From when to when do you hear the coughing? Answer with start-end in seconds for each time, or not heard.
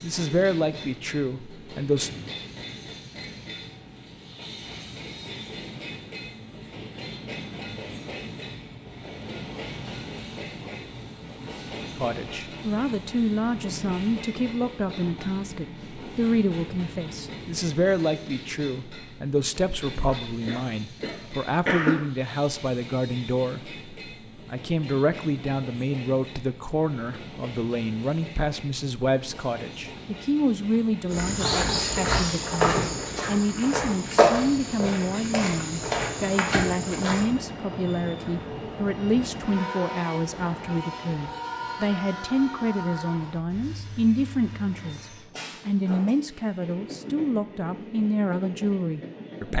20.1-21.9.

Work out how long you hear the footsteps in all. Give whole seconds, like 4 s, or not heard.
6 s.